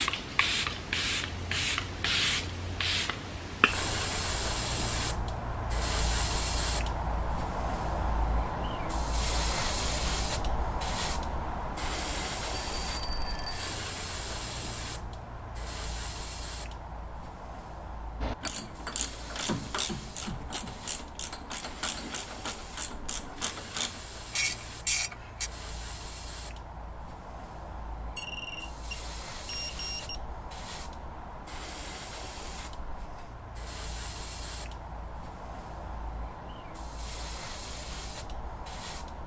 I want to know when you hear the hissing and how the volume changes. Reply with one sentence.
You can hear the hissing from 0.0 to 39.2 s, getting quieter.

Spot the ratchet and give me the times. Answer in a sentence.
You can hear the ratchet from 18.2 to 25.5 s.